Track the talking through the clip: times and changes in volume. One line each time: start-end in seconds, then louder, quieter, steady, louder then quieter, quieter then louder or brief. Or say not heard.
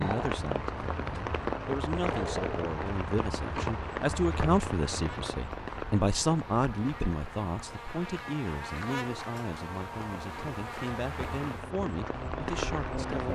0.0-13.3 louder then quieter.